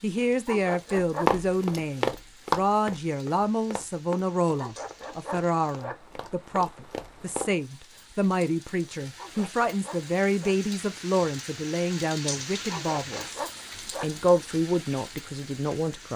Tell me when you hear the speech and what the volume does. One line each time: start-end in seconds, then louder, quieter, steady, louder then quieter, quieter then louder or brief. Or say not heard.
0.0-13.4 steady
14.0-16.1 brief.